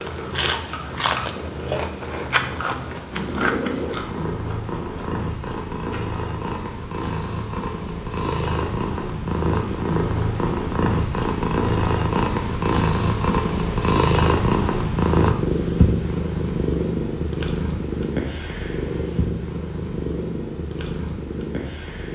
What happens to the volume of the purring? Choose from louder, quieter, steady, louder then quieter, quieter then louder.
louder then quieter.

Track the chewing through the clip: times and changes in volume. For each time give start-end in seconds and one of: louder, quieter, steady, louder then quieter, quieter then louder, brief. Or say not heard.
0.0-6.2 quieter.